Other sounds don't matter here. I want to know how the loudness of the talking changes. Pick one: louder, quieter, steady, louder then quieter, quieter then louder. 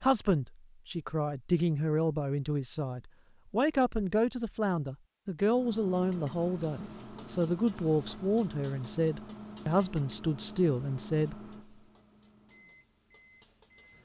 steady.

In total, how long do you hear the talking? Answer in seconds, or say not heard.
11 s.